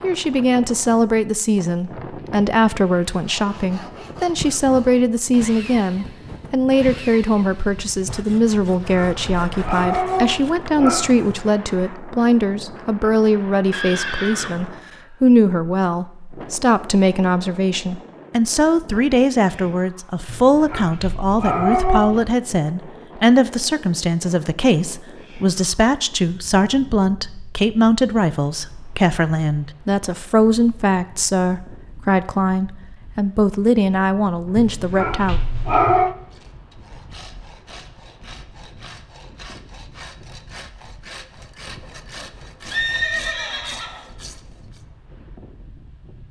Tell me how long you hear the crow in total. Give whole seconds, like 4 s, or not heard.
not heard.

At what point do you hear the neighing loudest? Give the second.
43 s.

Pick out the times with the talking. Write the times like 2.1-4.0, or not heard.
0.0-35.4.